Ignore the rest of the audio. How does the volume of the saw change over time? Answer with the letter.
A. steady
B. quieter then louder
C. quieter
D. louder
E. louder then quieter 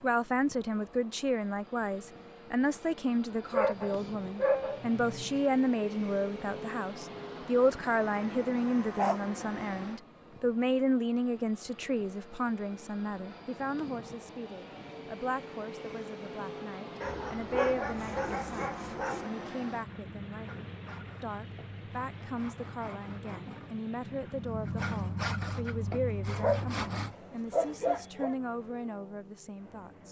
D.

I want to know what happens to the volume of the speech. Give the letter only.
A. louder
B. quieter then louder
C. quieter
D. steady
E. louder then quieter
C.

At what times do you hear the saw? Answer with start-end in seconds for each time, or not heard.
17.9-27.1.